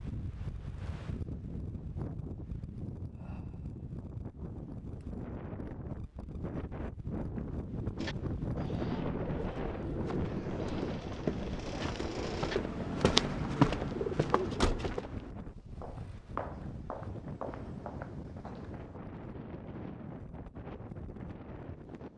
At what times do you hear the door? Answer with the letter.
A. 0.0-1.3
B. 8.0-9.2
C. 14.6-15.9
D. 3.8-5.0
C.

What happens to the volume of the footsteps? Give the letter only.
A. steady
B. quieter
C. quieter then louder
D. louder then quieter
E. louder
D.